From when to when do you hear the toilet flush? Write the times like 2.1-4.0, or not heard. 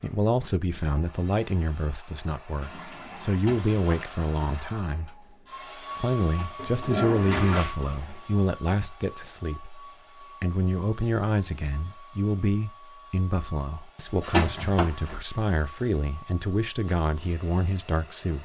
2.6-4.1, 6.5-7.8, 13.9-15.8.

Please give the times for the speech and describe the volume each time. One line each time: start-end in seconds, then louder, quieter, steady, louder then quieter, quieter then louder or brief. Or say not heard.
0.0-18.4 steady.